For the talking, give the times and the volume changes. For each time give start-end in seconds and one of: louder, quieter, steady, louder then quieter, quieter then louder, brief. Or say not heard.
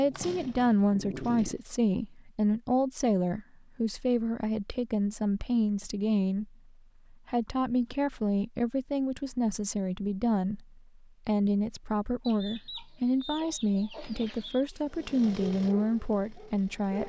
0.0-17.0 steady.